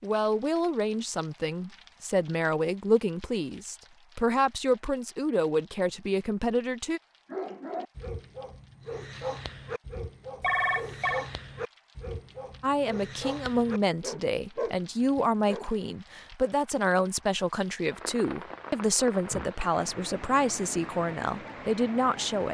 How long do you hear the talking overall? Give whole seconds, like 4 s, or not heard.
17 s.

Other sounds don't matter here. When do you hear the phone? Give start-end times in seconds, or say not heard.
10.4-11.2.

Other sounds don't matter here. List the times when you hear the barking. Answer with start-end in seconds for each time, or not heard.
7.2-15.7.